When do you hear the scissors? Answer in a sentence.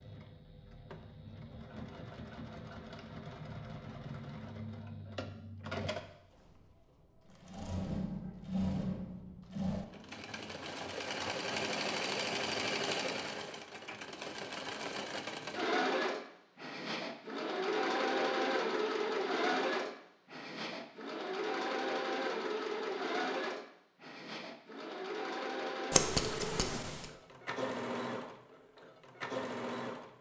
The scissors can be heard from 25.9 to 27.1 s.